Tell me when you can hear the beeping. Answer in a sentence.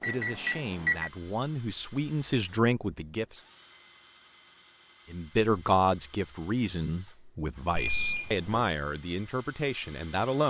The beeping can be heard from 0.0 to 1.1 s and from 7.7 to 8.7 s.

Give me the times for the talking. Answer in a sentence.
The talking can be heard from 0.1 to 3.5 s and from 5.1 to 10.4 s.